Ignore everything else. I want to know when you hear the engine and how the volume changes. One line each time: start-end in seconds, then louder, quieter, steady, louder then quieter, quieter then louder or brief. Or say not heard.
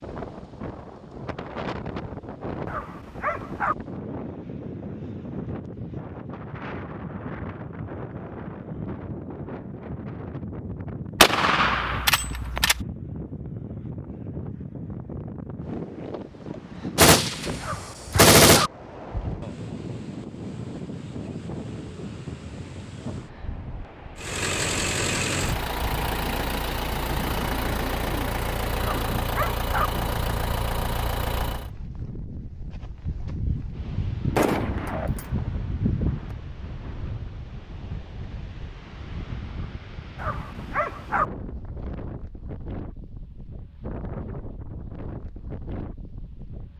24.1-31.7 steady.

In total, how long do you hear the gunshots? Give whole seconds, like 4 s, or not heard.
7 s.